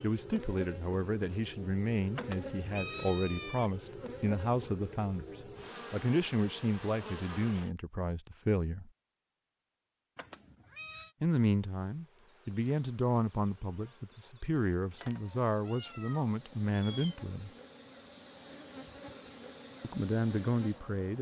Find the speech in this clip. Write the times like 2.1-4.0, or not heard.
0.0-5.2, 5.9-8.9, 11.2-17.5, 19.8-21.1.